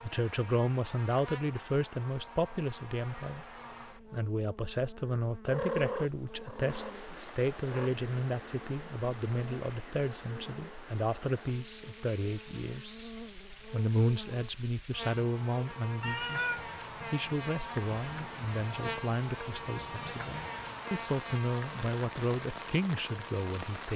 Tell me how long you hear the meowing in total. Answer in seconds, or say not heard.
3 s.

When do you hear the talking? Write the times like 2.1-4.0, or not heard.
0.0-13.1, 13.7-23.9.